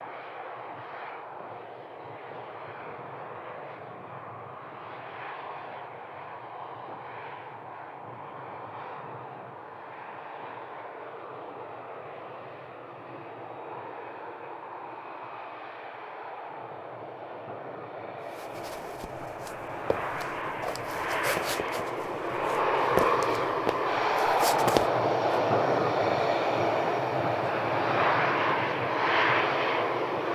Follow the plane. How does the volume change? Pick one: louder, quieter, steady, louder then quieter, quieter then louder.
louder.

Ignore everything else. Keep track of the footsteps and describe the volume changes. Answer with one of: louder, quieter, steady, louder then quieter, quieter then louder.
louder.